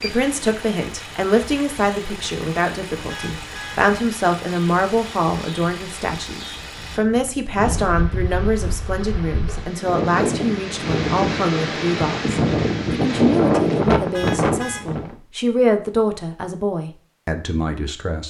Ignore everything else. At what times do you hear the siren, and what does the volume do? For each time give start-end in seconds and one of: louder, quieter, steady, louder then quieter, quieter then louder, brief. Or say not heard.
not heard.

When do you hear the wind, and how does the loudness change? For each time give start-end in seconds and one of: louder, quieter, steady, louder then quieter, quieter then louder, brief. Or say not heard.
0.0-15.2 louder.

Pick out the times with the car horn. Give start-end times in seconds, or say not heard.
3.0-3.8, 14.1-14.8.